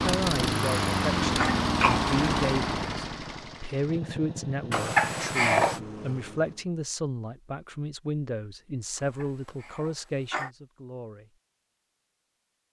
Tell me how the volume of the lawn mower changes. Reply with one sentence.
The volume of the lawn mower goes down.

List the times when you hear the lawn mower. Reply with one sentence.
You can hear the lawn mower from 0.0 to 6.7 s.